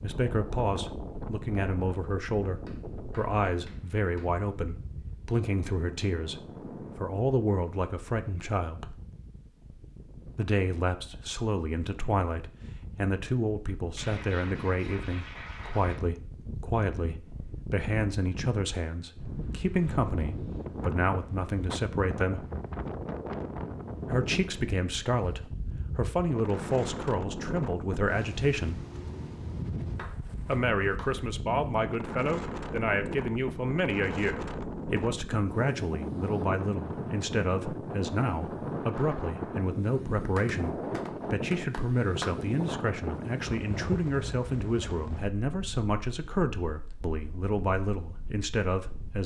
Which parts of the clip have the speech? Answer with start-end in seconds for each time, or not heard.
0.0-8.9, 10.3-22.4, 24.1-28.8, 30.4-49.2.